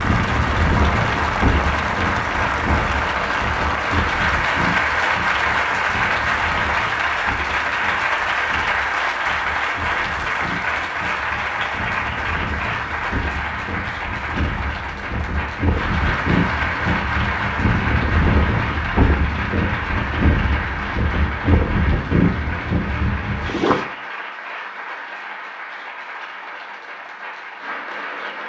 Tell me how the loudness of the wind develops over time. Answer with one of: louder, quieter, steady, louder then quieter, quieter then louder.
quieter then louder.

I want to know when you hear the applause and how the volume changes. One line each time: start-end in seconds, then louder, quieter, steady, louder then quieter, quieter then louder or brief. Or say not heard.
0.0-28.4 quieter.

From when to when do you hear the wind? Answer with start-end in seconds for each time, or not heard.
0.0-23.9.